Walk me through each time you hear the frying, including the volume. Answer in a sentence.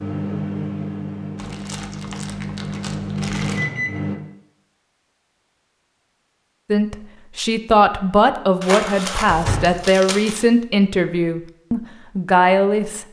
The frying can't be heard in this clip.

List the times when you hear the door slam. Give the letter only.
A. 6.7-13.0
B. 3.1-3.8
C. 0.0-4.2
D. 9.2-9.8
D.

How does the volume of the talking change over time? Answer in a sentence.
The loudness of the talking stays about the same.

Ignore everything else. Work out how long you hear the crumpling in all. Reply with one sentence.
The crumpling can be heard for 4 seconds in total.